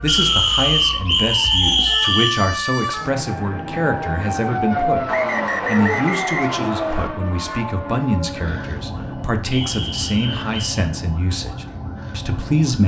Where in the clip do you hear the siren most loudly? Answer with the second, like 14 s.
5 s.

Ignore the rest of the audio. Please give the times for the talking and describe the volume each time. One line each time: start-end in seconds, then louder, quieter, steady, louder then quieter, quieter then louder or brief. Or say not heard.
0.0-12.8 steady.